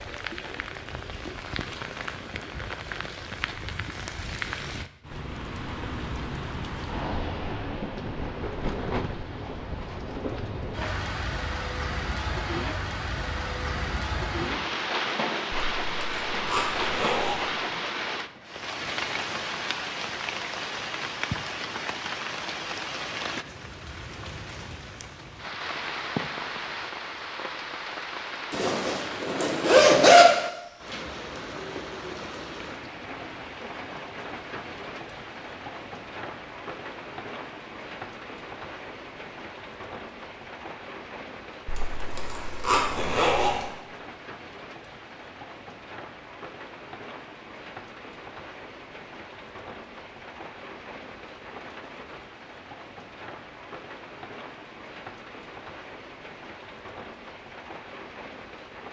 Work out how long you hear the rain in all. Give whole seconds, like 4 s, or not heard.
59 s.